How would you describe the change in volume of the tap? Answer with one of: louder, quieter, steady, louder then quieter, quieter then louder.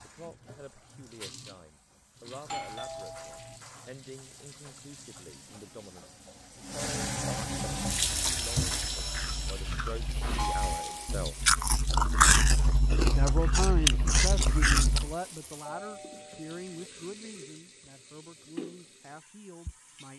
louder then quieter.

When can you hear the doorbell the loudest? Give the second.
11 s.